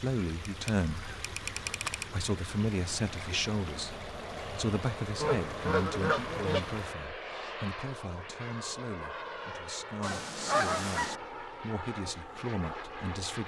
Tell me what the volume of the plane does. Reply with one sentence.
The volume of the plane stays about the same.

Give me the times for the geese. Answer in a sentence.
The geese can be heard from 0.5 to 2.0 s, from 5.2 to 6.7 s and from 10.0 to 11.2 s.